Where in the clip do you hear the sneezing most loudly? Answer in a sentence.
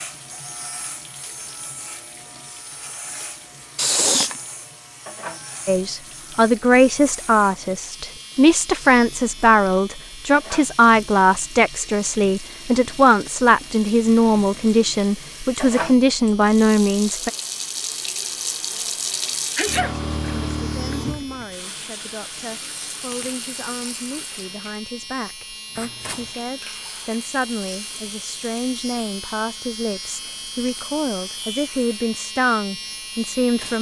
The volume of the sneezing peaks at 4 seconds.